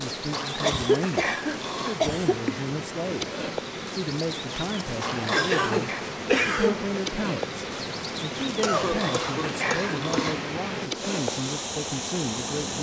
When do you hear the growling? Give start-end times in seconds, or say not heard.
0.3-2.0, 5.0-6.0, 8.7-10.4.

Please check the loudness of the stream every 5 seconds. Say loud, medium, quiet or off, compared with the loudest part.
medium, loud, loud.